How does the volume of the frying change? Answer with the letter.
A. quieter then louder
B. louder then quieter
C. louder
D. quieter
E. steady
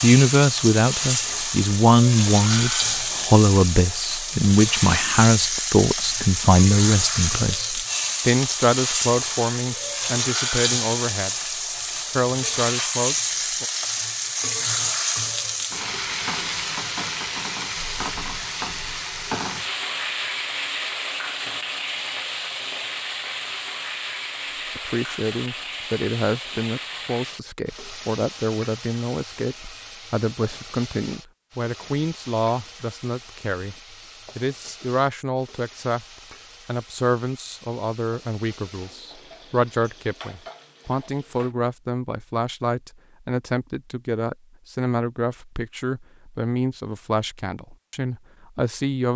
D.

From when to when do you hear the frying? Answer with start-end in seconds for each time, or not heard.
0.0-41.5.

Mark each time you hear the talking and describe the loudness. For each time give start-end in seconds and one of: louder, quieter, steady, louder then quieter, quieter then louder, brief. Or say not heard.
0.0-11.3 quieter
12.1-13.7 brief
24.8-49.1 steady.